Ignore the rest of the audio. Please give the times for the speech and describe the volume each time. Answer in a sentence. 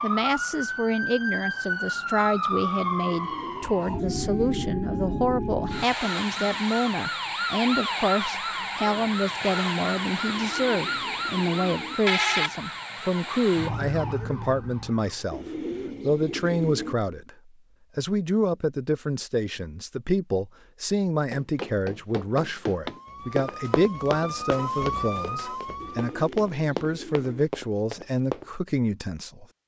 The speech can be heard from 0.0 to 15.4 s, at a steady volume; and from 16.1 to 29.4 s, at a steady volume.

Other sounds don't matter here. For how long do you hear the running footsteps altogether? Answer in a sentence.
You can hear the running footsteps for 7 seconds altogether.